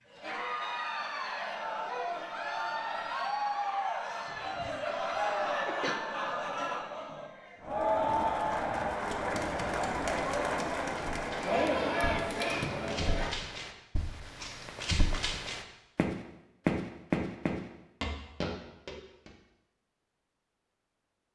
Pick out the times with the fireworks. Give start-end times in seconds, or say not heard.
not heard.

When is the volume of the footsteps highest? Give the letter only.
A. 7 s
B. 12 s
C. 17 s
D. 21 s
C.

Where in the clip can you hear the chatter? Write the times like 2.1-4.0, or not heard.
0.1-13.3.